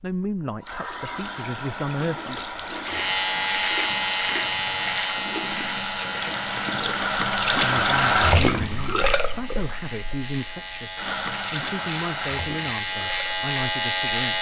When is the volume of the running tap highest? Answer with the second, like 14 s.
8 s.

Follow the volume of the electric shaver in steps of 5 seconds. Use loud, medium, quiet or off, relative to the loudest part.
loud, medium, loud.